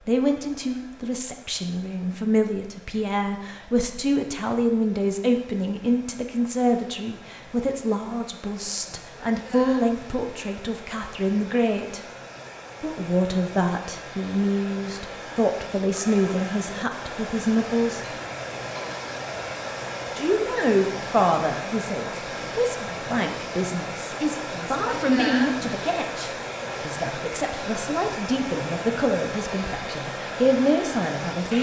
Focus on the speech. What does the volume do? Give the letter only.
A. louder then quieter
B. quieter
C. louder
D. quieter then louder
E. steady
E.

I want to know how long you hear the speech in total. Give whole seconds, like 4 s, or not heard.
29 s.